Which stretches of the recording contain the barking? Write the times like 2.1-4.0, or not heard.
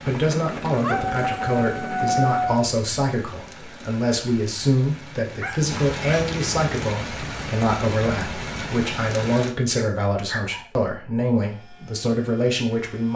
0.8-2.5, 5.4-6.3, 9.8-10.7.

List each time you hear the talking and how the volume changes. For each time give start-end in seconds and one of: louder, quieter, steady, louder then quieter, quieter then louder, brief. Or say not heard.
0.0-13.1 steady.